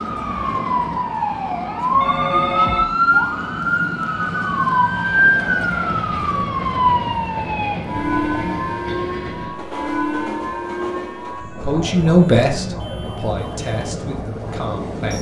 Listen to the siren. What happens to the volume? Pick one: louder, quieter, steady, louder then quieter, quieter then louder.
quieter.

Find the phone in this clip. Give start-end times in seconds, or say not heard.
1.9-2.9.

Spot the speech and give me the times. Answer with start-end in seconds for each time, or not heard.
11.6-15.1.